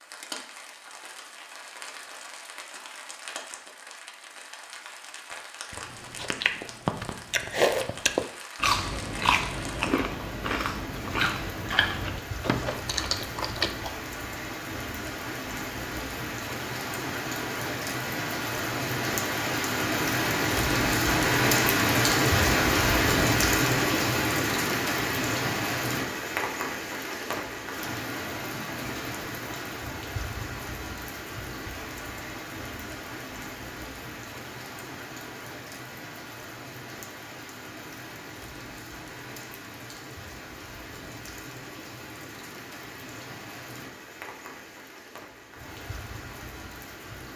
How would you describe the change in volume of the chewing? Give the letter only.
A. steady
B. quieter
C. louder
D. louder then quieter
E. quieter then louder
D.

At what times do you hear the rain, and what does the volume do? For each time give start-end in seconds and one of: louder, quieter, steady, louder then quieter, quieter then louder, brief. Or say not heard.
0.0-47.3 louder then quieter.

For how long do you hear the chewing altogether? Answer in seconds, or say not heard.
8 s.